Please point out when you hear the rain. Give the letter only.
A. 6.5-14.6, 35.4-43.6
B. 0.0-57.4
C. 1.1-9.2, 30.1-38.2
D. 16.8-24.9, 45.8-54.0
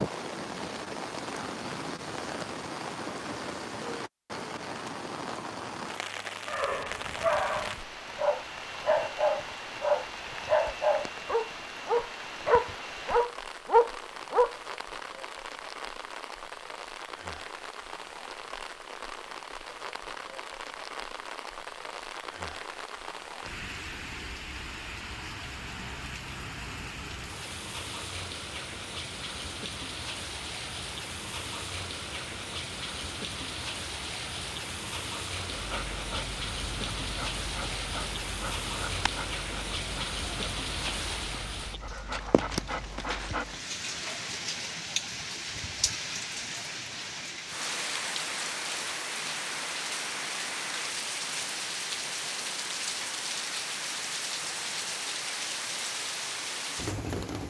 B.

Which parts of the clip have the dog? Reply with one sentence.
You can hear the dog from 6.5 to 14.6 s and from 35.4 to 43.6 s.